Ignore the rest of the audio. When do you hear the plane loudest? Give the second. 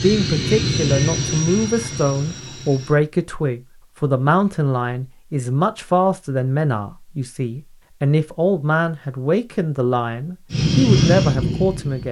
11 s.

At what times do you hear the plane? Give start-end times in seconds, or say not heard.
0.0-3.0, 10.5-12.0.